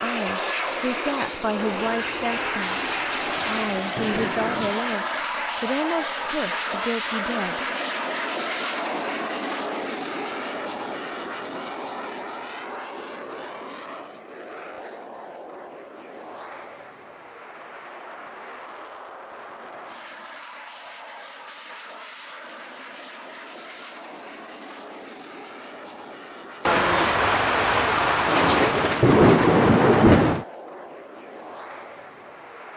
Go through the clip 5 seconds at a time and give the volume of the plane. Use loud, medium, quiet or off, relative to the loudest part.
loud, loud, medium, quiet, quiet, quiet, quiet.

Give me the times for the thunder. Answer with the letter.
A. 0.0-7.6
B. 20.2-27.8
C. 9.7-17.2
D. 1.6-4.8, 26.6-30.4
D.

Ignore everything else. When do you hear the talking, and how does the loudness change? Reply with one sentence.
The talking can be heard from 0.0 to 7.6 s, at a steady volume.